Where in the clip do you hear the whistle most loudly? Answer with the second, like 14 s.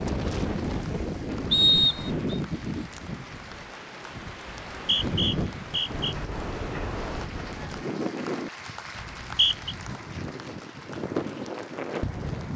2 s.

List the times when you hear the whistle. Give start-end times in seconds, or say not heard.
1.5-2.4, 4.7-6.2, 9.0-9.8.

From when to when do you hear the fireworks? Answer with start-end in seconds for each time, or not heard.
not heard.